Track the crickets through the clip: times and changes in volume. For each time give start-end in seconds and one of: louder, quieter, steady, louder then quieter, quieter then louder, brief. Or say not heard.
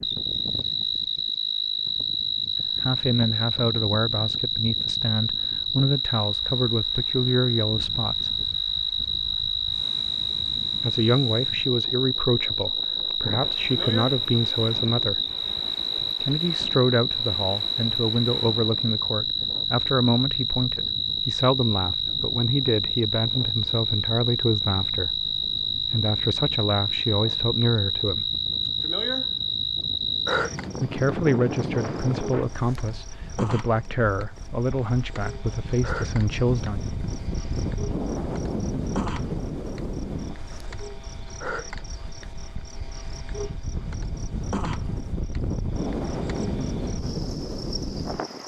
0.0-48.4 quieter.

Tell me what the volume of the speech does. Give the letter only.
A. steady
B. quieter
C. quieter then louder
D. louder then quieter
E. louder
A.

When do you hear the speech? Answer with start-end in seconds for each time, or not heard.
2.8-8.3, 10.8-15.2, 16.2-28.3, 30.8-36.9.